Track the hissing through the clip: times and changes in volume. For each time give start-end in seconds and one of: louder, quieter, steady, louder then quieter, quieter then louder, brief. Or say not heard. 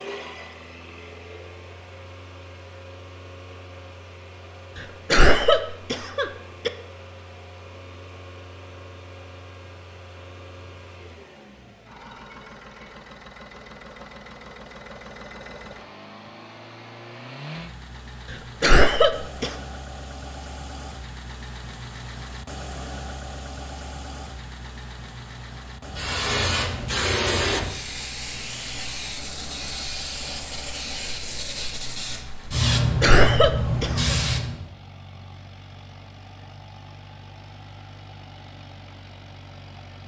25.9-34.6 quieter then louder.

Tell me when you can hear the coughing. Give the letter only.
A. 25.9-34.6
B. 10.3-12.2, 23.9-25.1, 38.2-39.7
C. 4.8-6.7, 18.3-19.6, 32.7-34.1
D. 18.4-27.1
C.